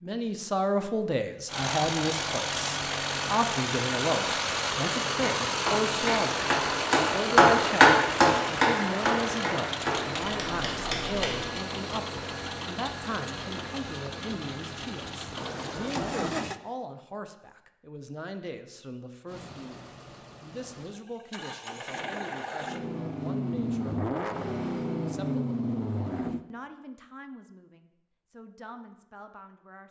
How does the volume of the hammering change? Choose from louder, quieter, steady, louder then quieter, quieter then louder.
louder then quieter.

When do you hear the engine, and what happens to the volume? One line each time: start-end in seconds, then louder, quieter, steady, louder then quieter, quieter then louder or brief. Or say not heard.
1.4-16.6 quieter
19.2-26.4 louder.